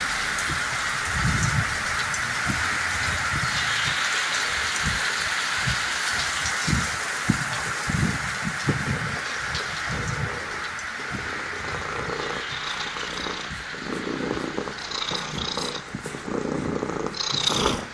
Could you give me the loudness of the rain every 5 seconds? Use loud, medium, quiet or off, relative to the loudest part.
loud, loud, medium, quiet.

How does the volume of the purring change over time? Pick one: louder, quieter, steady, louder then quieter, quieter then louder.
louder.